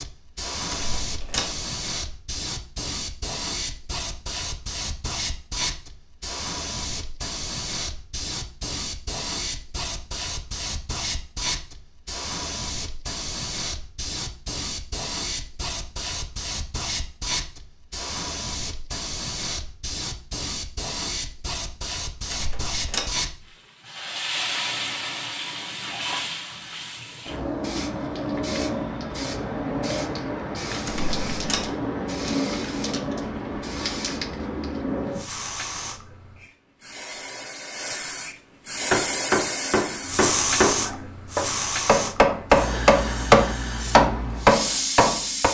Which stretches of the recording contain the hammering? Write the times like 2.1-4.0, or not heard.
38.9-45.5.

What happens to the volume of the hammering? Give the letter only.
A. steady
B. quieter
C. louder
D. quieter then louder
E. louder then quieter
C.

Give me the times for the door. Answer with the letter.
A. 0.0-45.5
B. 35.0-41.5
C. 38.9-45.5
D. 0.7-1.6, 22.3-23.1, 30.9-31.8
D.